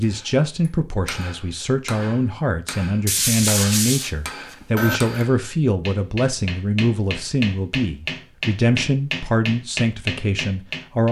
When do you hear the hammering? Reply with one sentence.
You can hear the hammering from 0.0 to 11.0 s.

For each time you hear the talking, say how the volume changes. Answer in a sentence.
The talking can be heard from 0.0 to 11.0 s, at a steady volume.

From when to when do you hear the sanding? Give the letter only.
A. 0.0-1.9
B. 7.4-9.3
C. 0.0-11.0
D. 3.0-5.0
D.